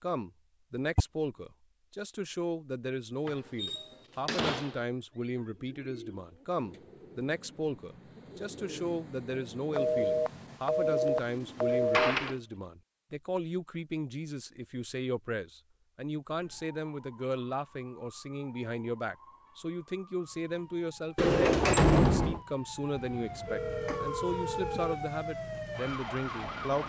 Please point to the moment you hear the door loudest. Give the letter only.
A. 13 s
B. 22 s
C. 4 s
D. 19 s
B.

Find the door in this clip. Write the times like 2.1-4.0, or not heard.
3.2-4.8, 11.7-12.3, 21.1-22.4.